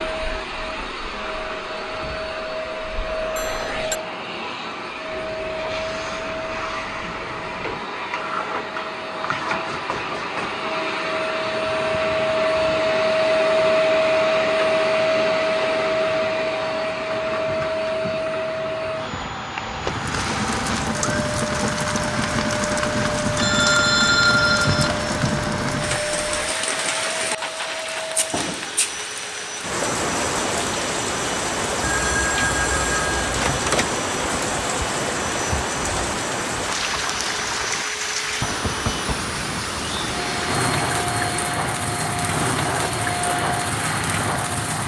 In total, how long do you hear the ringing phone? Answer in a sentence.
The ringing phone can be heard for 4 seconds in total.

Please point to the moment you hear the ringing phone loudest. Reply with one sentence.
The loudest moment of the ringing phone is at 24 seconds.